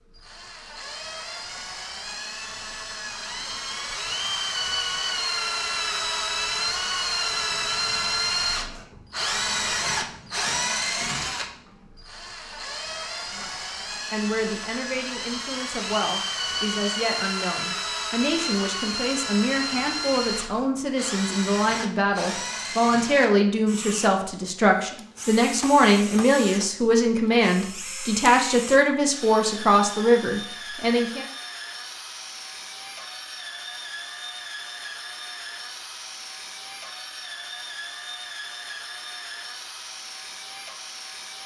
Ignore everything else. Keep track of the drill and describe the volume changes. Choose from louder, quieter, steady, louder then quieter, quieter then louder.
quieter.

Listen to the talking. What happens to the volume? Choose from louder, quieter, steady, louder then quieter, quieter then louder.
louder.